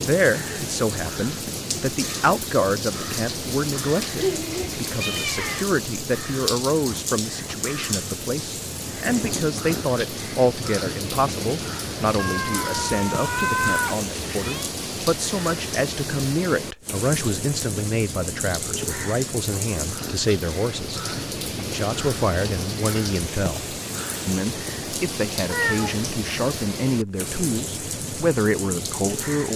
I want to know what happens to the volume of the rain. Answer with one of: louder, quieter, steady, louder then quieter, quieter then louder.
steady.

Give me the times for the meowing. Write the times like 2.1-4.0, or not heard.
4.2-5.7, 12.2-14.7, 25.4-26.1.